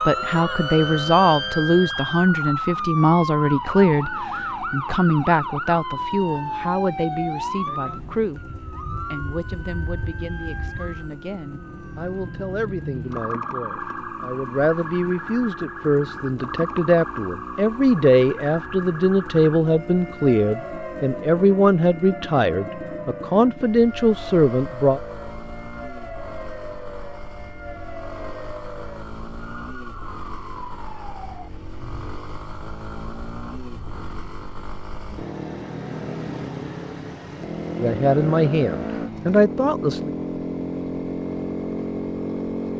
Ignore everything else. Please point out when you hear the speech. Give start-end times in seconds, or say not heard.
0.1-25.0, 37.8-40.1.